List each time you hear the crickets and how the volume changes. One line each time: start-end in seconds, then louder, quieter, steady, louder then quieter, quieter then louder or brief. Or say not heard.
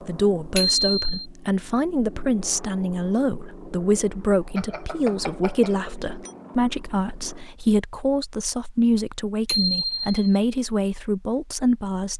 not heard.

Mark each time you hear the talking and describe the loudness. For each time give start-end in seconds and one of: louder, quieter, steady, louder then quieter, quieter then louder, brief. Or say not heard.
0.1-12.1 steady.